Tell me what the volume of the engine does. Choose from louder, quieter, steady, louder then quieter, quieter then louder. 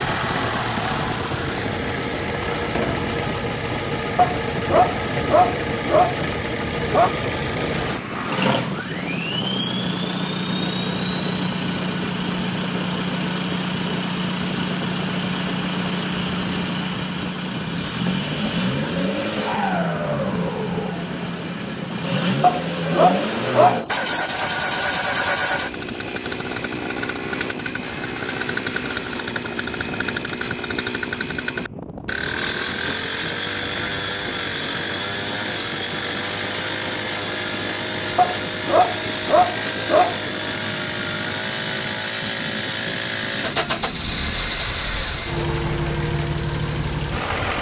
steady.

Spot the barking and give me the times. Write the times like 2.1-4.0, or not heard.
4.2-7.1, 22.4-23.9, 38.1-40.3.